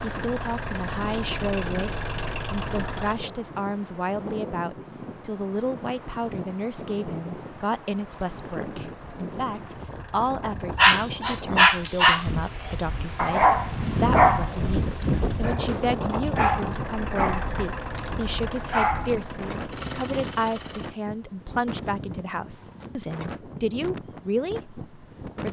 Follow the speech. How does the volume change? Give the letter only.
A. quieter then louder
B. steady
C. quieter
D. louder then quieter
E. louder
B.